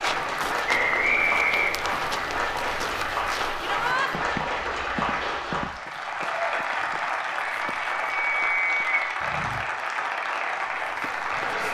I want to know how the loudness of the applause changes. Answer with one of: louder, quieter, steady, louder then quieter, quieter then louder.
steady.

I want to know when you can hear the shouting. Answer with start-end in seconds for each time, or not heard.
3.6-4.1.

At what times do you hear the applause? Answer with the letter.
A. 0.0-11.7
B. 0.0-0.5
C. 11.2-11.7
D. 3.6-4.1
A.